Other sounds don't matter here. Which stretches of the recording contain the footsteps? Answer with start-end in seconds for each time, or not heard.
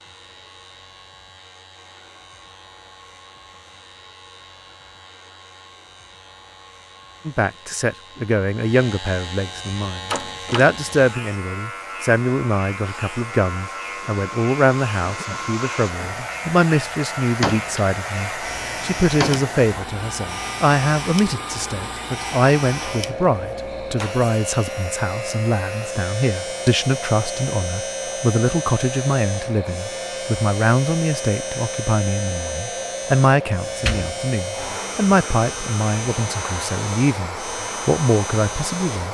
not heard.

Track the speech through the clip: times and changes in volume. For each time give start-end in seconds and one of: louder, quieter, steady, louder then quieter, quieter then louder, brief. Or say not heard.
7.2-39.0 steady.